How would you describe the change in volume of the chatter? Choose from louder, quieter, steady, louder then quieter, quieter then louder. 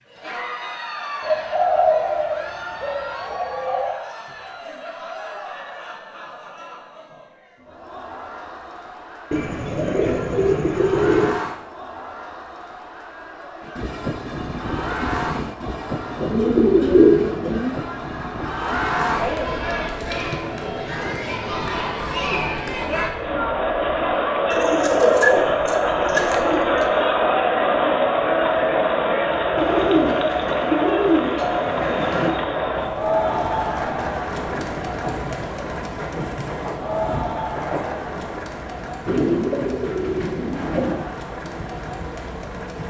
louder then quieter.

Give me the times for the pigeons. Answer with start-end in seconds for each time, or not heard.
1.2-4.0, 9.3-11.3, 16.2-17.8, 24.5-26.9, 29.6-32.4, 39.0-41.0.